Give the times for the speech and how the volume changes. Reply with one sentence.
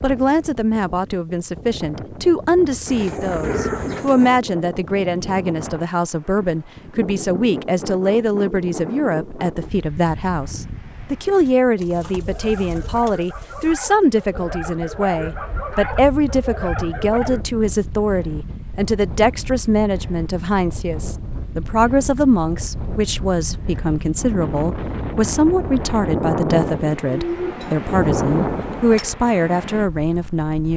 The speech can be heard from 0.0 to 30.7 s, at a steady volume.